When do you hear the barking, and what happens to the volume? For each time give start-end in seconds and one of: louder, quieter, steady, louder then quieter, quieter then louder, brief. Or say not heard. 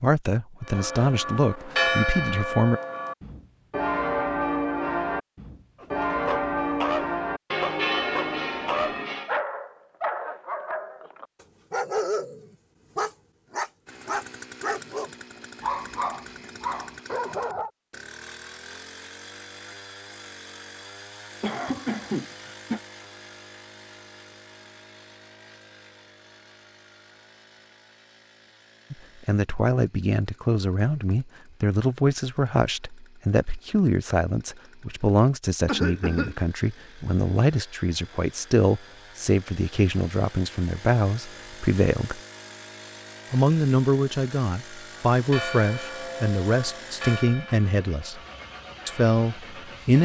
5.8-17.7 steady.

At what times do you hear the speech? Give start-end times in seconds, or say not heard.
0.0-2.8, 28.9-42.2, 43.3-48.2, 48.9-49.9.